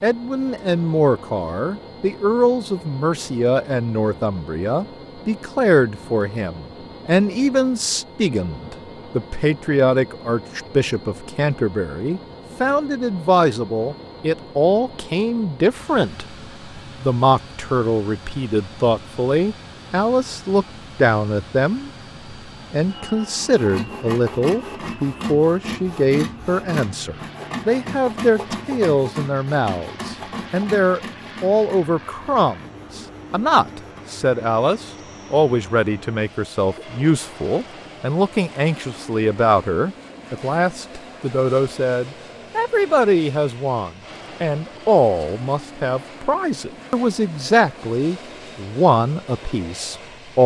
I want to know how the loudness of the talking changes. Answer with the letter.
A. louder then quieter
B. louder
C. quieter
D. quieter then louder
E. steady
E.